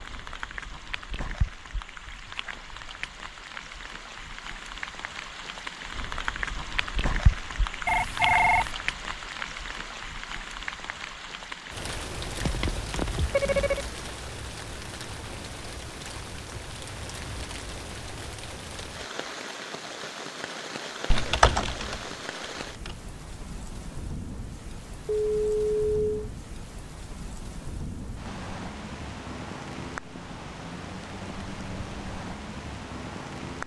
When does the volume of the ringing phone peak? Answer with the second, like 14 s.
8 s.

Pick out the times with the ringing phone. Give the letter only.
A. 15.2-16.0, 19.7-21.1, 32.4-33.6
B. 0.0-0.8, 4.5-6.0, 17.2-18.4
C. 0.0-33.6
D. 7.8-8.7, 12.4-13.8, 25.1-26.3
D.